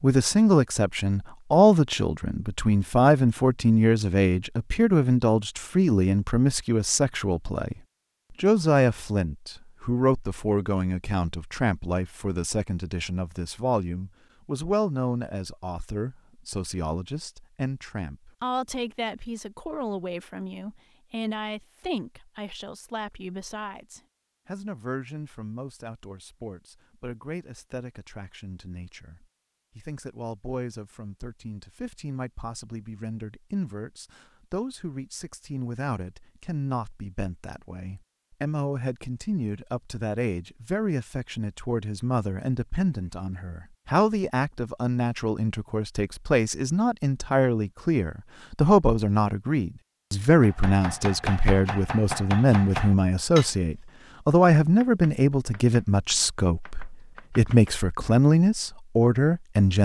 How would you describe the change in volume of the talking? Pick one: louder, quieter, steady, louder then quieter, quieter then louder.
quieter then louder.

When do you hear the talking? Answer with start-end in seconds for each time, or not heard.
0.0-59.8.